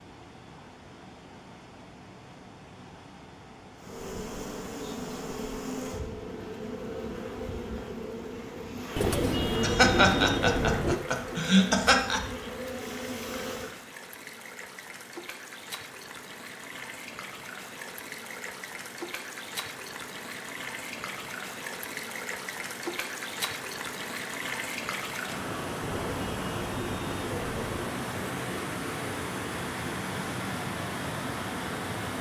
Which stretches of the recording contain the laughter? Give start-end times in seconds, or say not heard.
9.6-12.2.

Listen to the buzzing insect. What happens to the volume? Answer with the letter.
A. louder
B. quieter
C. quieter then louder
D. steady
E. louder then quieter
D.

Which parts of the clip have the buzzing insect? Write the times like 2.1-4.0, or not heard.
3.8-13.8.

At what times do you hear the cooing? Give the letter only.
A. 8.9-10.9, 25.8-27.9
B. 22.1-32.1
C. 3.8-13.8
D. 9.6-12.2
A.